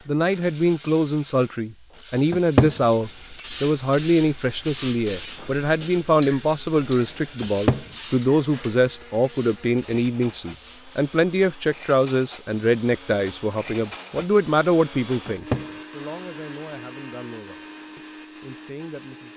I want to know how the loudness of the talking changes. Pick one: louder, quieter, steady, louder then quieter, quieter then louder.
quieter.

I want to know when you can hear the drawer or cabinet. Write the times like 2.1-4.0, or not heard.
2.3-2.8, 7.4-7.8, 15.2-15.7.